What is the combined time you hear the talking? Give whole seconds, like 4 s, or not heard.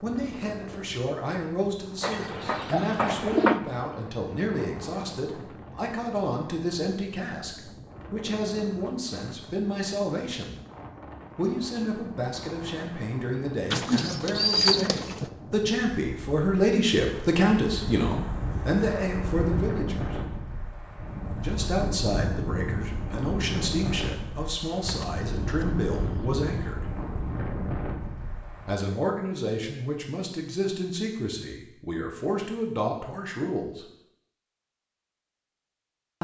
30 s.